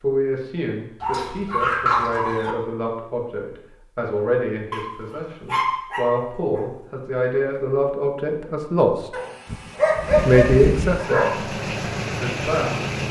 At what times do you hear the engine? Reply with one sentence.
The engine can be heard from 10.0 to 13.0 s.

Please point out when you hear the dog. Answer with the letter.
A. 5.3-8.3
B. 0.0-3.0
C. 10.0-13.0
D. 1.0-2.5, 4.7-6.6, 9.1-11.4
D.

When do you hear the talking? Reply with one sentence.
You can hear the talking from 0.0 to 8.9 s, from 10.2 to 11.2 s and from 12.2 to 12.8 s.